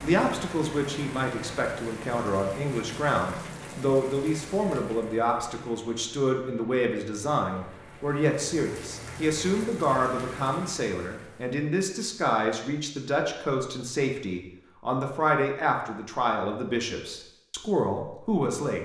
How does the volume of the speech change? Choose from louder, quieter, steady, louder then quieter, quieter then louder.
steady.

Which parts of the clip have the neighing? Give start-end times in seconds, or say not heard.
not heard.